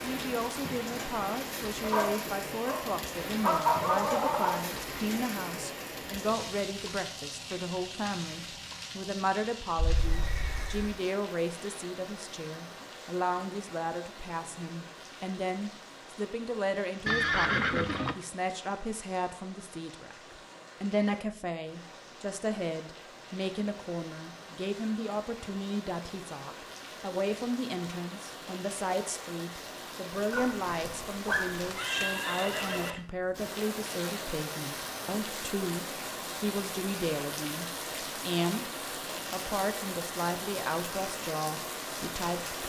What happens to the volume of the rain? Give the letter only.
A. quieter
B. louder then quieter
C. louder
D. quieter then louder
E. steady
D.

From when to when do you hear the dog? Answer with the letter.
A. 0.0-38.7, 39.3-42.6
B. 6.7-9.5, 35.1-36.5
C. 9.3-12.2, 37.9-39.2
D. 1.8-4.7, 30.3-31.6
D.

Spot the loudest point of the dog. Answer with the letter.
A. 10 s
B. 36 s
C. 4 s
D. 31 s
C.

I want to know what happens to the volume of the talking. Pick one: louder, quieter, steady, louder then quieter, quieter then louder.
steady.